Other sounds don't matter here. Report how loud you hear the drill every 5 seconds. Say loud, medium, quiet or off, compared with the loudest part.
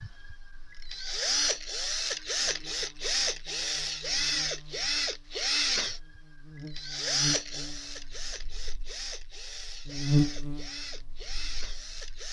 loud, loud, medium.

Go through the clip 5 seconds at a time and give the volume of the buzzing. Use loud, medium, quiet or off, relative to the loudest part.
quiet, quiet, loud.